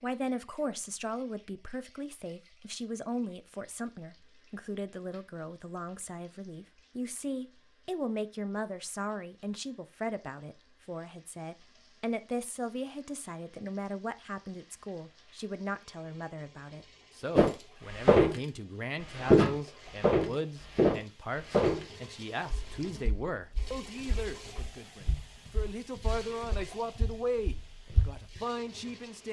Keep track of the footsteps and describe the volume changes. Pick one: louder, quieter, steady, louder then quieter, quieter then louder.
quieter then louder.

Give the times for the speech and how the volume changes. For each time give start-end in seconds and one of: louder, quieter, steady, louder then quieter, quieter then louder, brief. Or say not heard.
0.0-29.2 steady.